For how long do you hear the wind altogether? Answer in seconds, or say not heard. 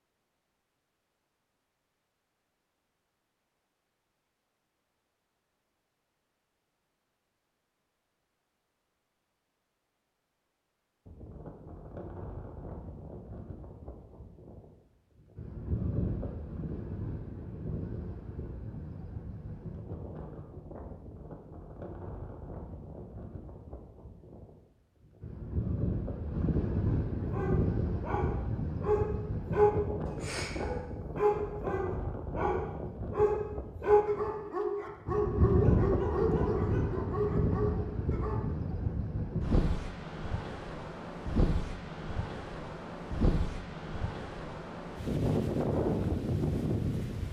36 s.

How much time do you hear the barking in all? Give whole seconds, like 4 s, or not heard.
11 s.